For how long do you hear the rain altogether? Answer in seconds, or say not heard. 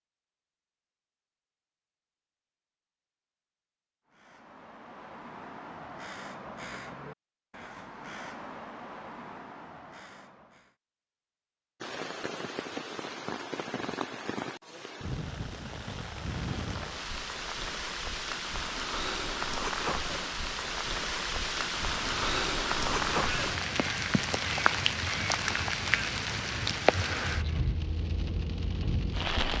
18 s.